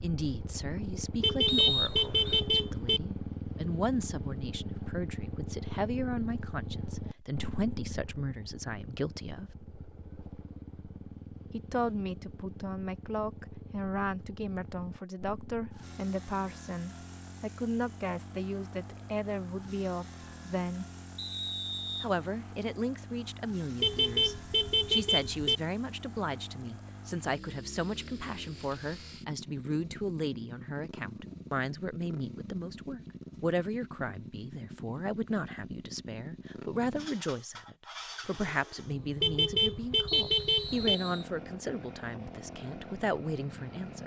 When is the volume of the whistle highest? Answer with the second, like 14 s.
2 s.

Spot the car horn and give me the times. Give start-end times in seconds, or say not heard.
1.2-3.0, 23.8-25.6, 39.2-41.0.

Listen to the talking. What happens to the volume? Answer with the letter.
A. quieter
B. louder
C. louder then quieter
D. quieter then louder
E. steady
E.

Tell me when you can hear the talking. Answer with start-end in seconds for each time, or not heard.
0.0-9.6, 11.5-20.9, 22.0-44.0.